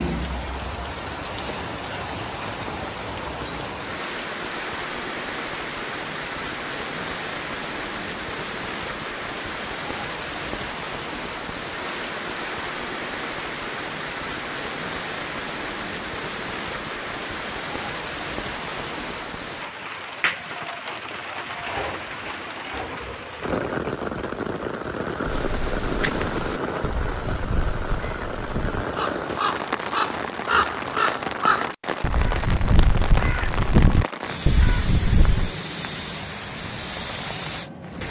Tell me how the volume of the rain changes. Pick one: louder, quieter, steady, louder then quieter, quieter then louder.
steady.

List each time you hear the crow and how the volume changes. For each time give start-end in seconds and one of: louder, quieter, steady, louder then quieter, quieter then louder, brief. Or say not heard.
25.2-35.5 louder.